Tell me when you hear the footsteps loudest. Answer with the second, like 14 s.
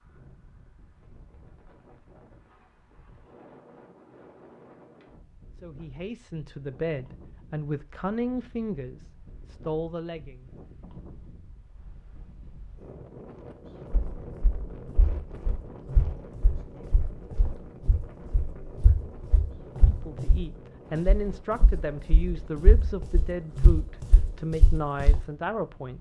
24 s.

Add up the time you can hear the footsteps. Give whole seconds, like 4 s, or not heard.
11 s.